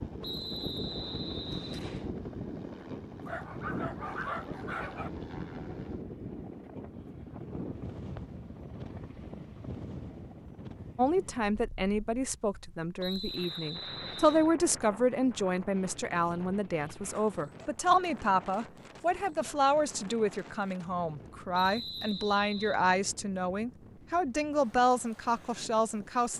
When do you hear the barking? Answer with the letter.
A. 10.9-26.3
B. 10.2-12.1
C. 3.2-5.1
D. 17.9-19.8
C.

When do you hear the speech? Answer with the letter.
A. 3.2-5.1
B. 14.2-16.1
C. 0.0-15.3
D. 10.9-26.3
D.